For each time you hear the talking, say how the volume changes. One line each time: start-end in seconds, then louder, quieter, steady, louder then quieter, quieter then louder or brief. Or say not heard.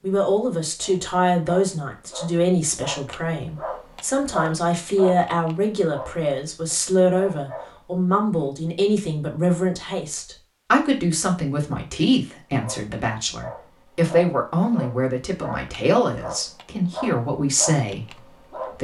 0.0-18.8 steady.